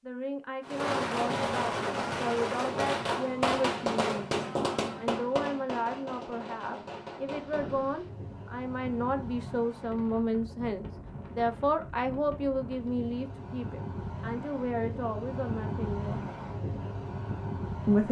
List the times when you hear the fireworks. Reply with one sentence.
You can hear the fireworks from 0.6 to 7.8 s.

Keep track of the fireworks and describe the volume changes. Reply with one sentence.
The loudness of the fireworks goes down.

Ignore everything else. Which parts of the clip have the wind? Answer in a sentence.
You can hear the wind from 7.2 to 18.0 s.